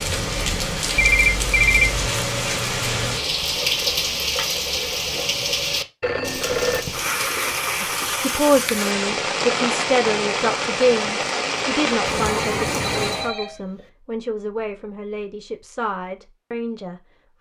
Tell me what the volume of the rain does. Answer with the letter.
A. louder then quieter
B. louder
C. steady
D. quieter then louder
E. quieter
C.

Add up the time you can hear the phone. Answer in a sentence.
The phone can be heard for 3 seconds in total.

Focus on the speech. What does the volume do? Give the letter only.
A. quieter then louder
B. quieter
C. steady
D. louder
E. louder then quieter
B.